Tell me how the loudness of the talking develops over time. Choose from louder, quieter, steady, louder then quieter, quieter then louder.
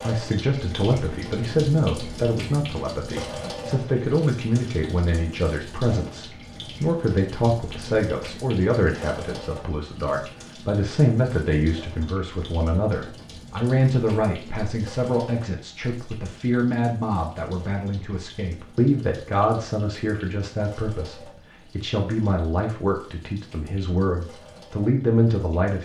steady.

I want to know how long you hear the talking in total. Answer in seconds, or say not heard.
26 s.